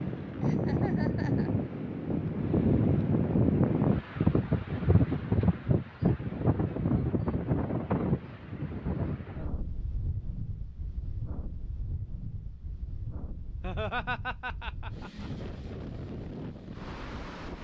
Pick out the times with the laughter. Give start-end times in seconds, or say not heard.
0.4-1.6, 13.6-15.3.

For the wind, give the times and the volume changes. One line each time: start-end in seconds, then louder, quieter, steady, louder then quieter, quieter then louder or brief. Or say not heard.
0.0-17.5 quieter.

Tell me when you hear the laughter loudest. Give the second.
14 s.